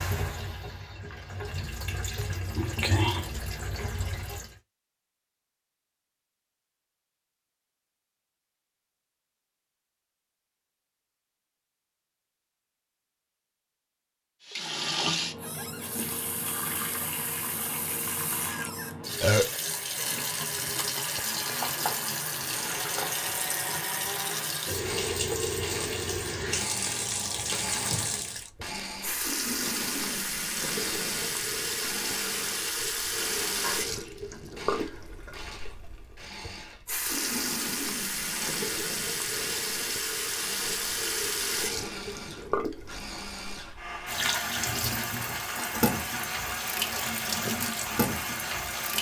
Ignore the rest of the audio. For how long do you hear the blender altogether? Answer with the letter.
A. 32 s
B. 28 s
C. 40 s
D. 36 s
B.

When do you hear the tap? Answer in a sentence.
You can hear the tap from 0.0 to 4.5 s and from 14.4 to 48.9 s.